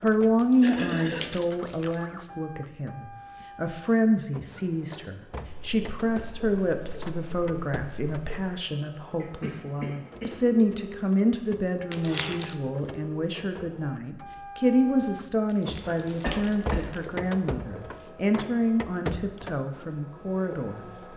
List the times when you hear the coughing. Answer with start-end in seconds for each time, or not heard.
0.6-1.3, 9.2-10.3, 16.2-16.9.